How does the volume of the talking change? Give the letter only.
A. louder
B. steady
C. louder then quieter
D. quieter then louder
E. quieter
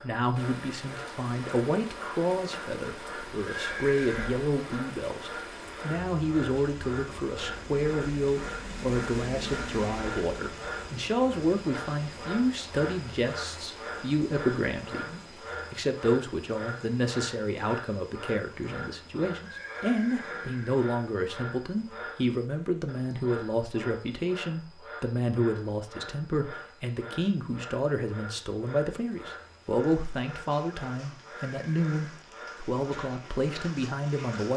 B.